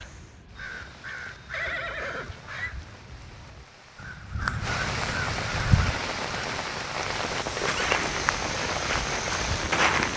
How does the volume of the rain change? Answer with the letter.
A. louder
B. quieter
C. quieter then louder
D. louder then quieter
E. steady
A.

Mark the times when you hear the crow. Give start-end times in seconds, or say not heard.
0.0-6.5.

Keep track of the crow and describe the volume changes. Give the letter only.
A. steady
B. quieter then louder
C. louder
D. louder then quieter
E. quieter
B.